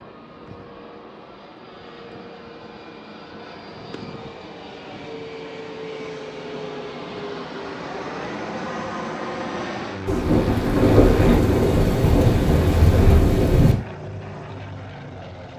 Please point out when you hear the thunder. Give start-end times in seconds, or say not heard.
10.1-13.8.